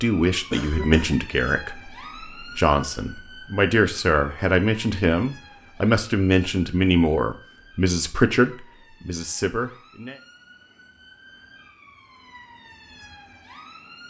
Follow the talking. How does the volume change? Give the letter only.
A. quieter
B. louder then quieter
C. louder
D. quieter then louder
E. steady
E.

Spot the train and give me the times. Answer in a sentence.
You can't hear the train here.